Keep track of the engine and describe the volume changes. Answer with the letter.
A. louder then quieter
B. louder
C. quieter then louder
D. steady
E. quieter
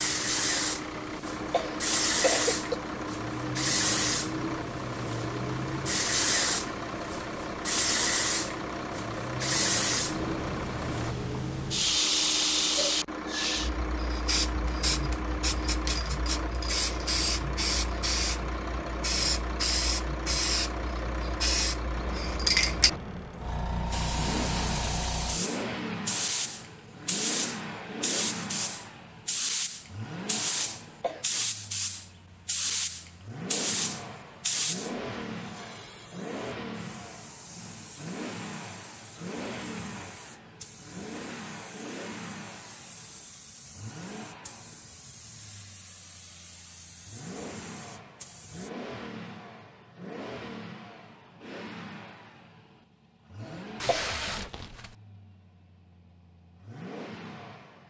E.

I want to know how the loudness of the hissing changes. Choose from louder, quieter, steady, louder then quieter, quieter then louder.
quieter.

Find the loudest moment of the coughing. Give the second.
2 s.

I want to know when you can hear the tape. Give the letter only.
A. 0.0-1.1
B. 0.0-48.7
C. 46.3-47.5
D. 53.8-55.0
D.